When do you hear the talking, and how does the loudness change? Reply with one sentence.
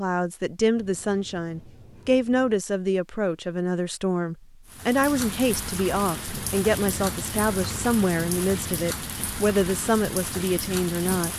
The talking can be heard from 0.0 to 11.3 s, at a steady volume.